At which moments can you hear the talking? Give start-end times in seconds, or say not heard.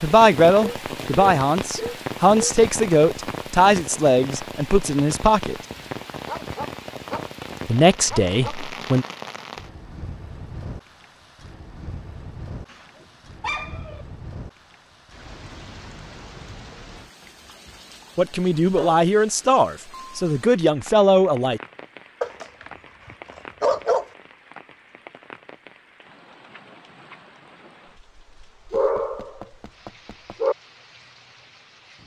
0.0-5.5, 7.7-9.1, 18.1-21.6.